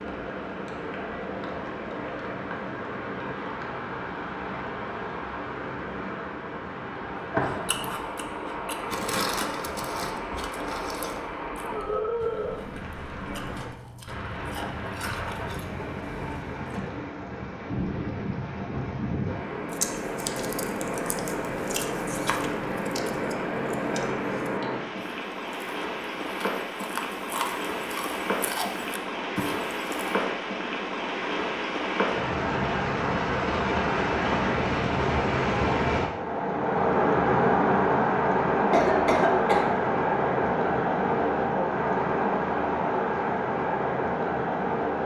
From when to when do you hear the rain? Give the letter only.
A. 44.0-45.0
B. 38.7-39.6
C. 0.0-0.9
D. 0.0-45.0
D.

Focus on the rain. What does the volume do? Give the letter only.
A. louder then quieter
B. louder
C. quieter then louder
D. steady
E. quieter
B.